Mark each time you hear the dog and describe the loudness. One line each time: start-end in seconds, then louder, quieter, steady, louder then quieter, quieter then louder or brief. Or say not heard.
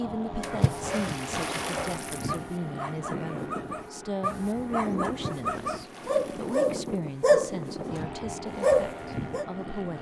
0.3-8.0 louder
8.6-9.4 brief.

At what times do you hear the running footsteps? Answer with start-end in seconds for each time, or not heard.
not heard.